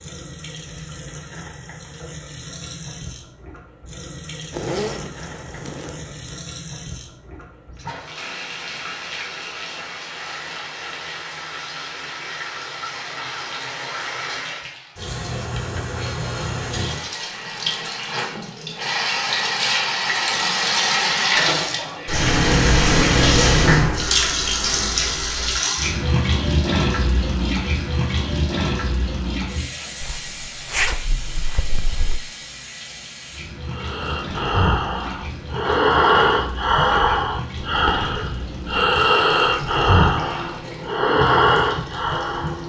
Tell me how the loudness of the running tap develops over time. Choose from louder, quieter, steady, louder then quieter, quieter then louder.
louder then quieter.